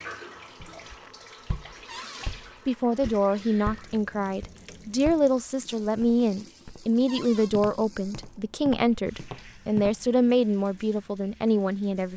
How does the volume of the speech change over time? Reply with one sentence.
The loudness of the speech stays about the same.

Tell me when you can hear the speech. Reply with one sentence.
The speech can be heard from 2.6 to 12.1 s.